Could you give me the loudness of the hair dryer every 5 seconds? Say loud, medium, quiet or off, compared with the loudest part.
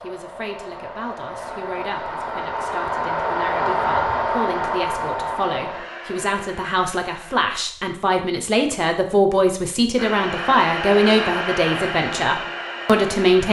loud, medium, loud.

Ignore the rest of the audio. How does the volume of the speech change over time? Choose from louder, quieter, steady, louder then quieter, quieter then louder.
louder.